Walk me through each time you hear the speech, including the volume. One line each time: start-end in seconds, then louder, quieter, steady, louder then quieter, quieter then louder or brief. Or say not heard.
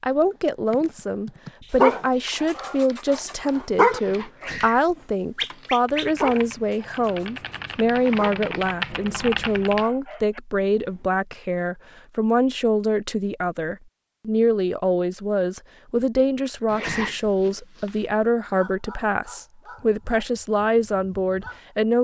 0.0-21.9 steady.